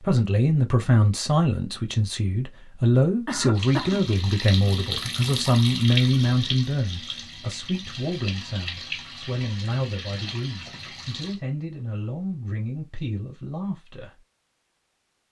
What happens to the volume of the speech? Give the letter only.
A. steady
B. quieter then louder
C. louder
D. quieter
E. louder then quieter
D.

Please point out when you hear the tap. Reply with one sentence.
The tap can be heard from 3.5 to 11.4 s.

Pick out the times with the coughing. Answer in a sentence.
The coughing can be heard from 3.2 to 4.0 s.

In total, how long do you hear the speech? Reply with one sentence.
The speech can be heard for 14 seconds in total.